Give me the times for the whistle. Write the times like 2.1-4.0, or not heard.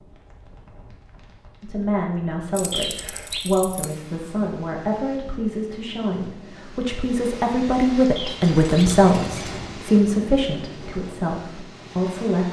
2.7-3.5, 8.2-8.9.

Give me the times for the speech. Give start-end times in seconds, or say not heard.
1.6-12.4.